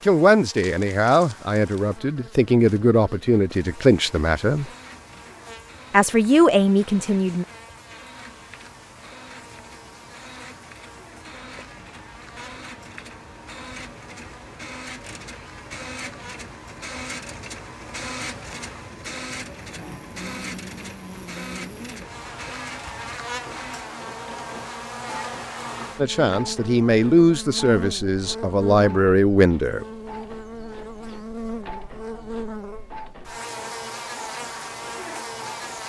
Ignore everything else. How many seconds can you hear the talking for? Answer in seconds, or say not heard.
10 s.